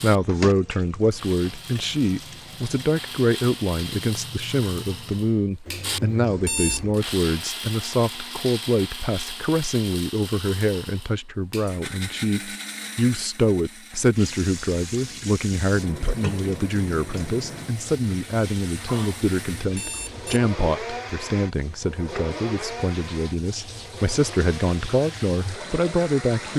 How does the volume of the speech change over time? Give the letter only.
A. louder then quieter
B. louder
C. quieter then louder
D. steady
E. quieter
D.